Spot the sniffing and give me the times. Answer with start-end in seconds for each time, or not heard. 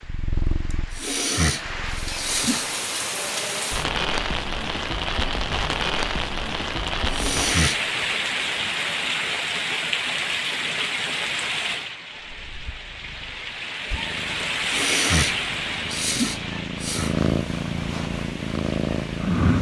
0.7-2.6, 6.8-8.0, 14.7-17.1.